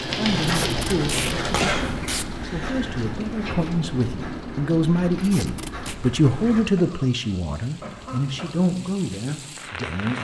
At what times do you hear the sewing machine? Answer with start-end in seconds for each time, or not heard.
0.0-1.6.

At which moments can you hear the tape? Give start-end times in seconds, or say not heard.
0.4-2.2, 5.2-6.0.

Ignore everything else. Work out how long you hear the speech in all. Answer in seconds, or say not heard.
10 s.